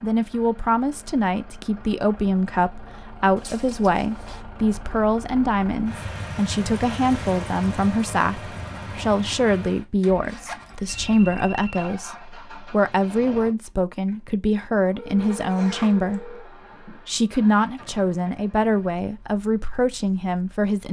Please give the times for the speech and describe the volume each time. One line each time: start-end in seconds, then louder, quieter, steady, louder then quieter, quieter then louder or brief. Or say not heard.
0.0-20.8 steady.